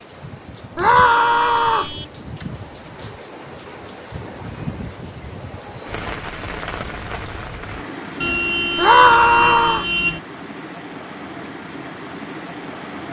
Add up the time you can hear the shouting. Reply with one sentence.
The shouting can be heard for 2 seconds in total.